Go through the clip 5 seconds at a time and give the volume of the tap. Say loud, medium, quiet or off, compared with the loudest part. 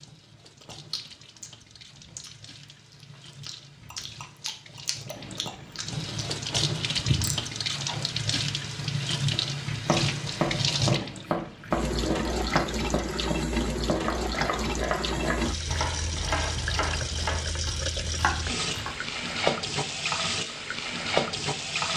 quiet, loud, loud, loud, loud.